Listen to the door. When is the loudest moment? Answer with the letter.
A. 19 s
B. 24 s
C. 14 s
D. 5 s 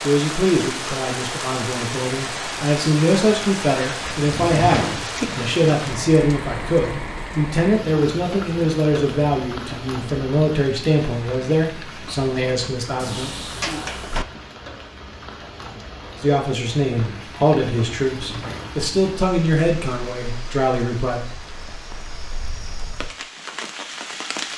D.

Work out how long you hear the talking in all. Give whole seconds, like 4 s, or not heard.
18 s.